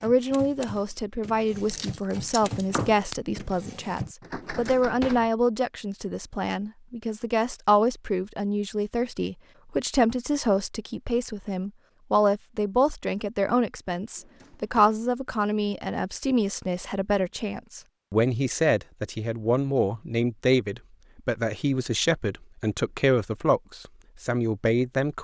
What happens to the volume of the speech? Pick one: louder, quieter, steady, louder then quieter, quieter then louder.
steady.